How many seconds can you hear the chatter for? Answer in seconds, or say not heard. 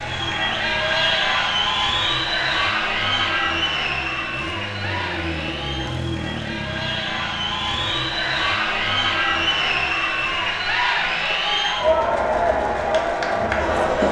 14 s.